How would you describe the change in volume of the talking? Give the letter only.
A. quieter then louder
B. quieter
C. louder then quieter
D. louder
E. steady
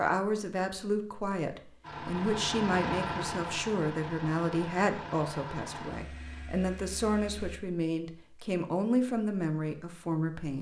E.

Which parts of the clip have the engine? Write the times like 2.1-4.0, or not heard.
1.8-7.6.